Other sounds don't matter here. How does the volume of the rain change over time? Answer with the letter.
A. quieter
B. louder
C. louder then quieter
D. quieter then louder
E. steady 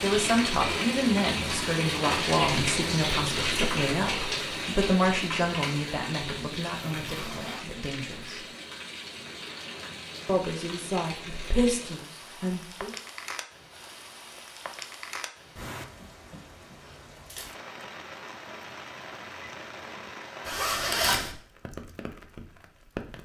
A.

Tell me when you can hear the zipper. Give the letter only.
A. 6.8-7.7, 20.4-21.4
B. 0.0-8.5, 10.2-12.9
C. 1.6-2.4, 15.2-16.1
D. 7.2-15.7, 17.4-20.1
A.